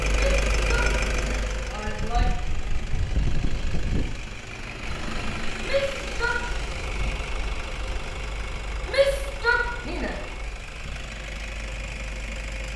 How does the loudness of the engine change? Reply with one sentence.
The volume of the engine goes down.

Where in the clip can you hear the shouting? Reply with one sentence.
The shouting can be heard from 0.1 to 2.3 s, from 5.6 to 6.3 s and from 8.8 to 10.2 s.